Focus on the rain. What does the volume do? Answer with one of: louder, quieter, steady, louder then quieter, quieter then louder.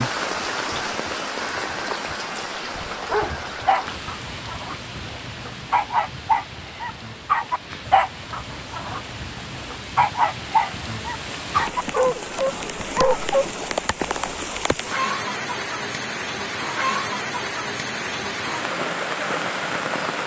quieter then louder.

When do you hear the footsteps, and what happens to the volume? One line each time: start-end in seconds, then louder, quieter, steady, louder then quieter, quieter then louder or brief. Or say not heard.
not heard.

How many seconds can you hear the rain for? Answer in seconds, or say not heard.
20 s.